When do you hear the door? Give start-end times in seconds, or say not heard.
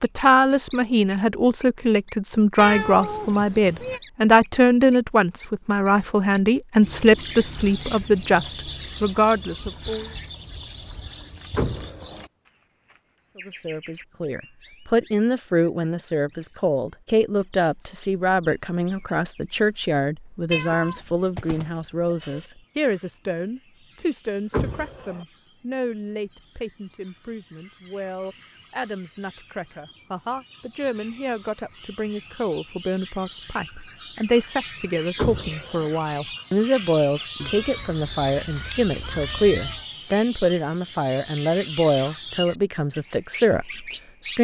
11.6-12.2, 24.5-25.2, 35.1-35.9.